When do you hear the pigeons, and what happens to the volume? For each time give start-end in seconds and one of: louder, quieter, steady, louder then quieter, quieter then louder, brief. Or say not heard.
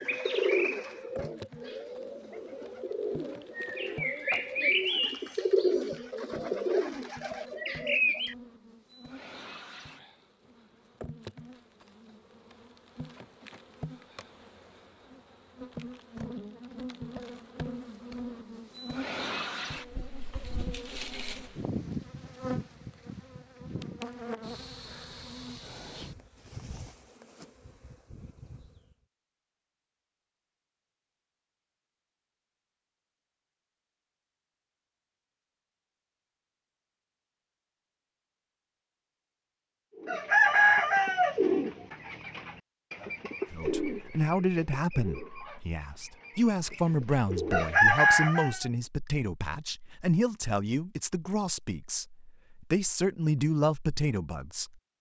0.0-8.3 quieter then louder
40.0-48.7 quieter then louder.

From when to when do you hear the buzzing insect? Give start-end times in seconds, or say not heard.
0.0-28.9.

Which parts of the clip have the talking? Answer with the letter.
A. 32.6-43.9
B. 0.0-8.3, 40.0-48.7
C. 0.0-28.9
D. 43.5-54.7
D.